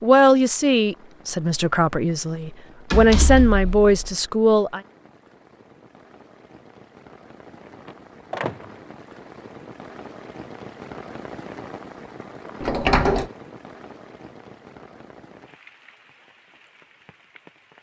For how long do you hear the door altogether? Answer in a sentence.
The door can be heard for 3 seconds in total.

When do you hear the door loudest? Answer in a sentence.
The volume of the door peaks at 13 seconds.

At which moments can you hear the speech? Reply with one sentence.
The speech can be heard from 0.0 to 4.8 s.